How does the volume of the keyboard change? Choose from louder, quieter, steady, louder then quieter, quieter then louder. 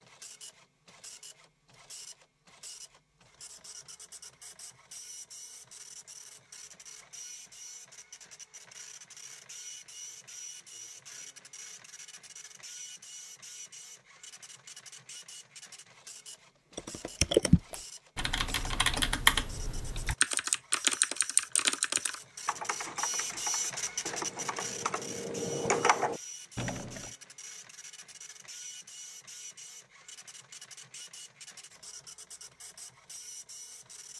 quieter then louder.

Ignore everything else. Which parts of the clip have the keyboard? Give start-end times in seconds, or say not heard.
16.8-27.1.